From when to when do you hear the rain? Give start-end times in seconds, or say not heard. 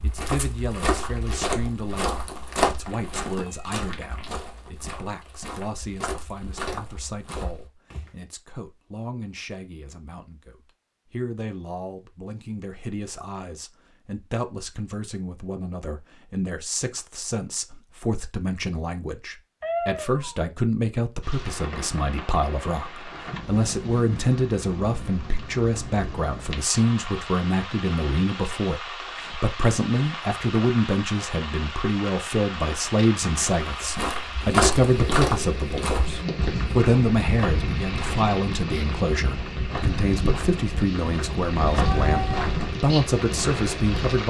21.2-44.2.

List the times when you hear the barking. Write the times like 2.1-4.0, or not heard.
not heard.